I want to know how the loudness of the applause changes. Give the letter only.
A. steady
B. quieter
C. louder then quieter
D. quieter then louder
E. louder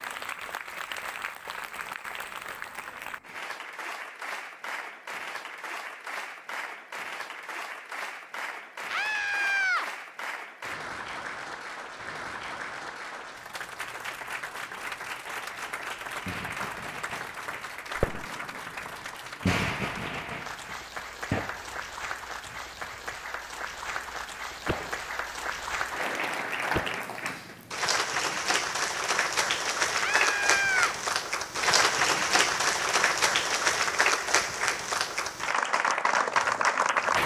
E.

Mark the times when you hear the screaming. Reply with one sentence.
The screaming can be heard from 8.8 to 9.8 s and from 29.9 to 30.9 s.